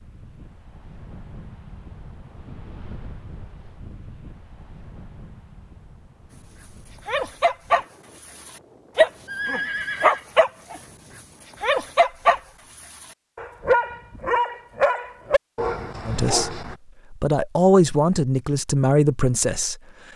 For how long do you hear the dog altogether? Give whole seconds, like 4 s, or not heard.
7 s.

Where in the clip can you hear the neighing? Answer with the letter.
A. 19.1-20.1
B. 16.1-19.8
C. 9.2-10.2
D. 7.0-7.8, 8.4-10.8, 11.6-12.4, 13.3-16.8
C.